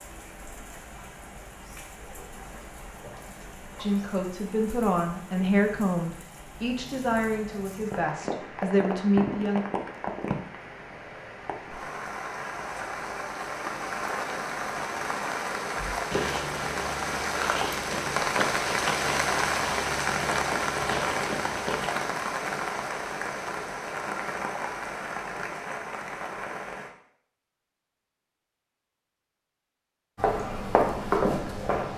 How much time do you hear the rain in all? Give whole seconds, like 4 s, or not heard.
27 s.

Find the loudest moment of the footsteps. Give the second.
31 s.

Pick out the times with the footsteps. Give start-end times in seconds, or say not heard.
15.8-21.9, 30.1-31.9.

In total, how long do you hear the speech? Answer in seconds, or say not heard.
6 s.